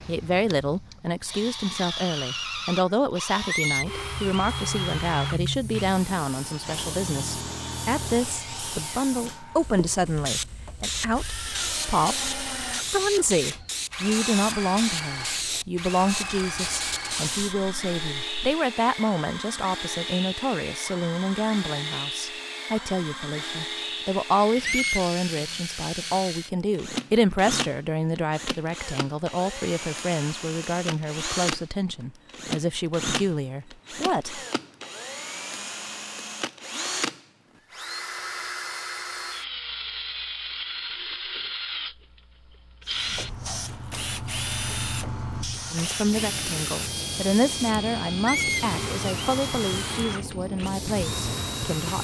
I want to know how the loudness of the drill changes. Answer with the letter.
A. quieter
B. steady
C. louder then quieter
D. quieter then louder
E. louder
B.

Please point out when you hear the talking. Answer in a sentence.
The talking can be heard from 0.1 to 34.4 s and from 45.7 to 51.9 s.